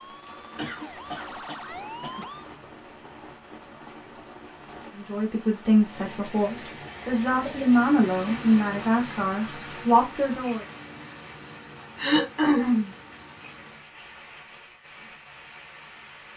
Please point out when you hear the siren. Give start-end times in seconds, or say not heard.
0.0-2.5.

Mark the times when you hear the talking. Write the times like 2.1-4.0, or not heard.
5.0-10.7.